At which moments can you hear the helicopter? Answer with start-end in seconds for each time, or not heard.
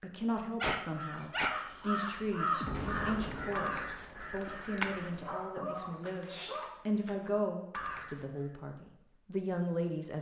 not heard.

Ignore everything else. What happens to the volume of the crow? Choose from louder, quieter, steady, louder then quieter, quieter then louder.
quieter.